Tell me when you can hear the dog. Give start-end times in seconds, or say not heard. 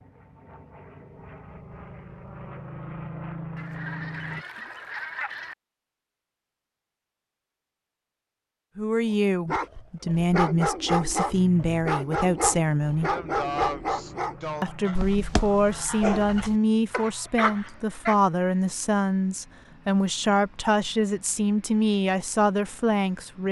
9.4-18.1.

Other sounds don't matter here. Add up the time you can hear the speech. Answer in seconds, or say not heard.
13 s.